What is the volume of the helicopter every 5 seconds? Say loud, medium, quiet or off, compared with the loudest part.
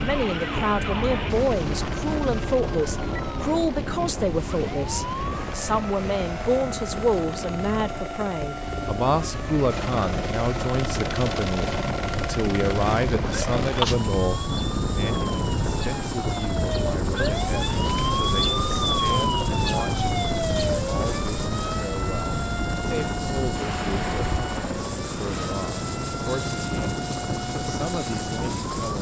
loud, medium, loud, loud, loud, loud.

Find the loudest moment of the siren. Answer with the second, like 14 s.
19 s.